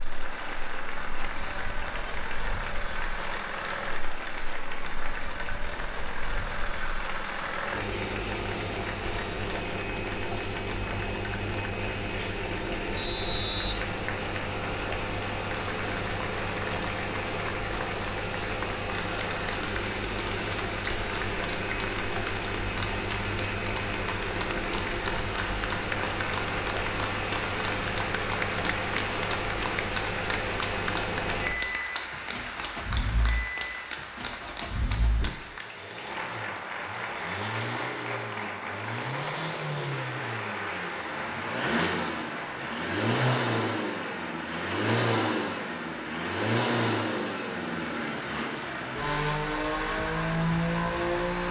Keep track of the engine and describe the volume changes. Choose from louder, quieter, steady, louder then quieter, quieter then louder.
louder.